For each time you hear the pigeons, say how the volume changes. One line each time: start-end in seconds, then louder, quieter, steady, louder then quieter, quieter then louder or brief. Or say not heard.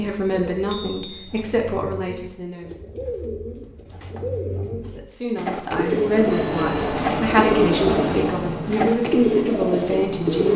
0.0-10.5 louder.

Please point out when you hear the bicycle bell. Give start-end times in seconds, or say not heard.
0.7-1.4, 6.3-7.0.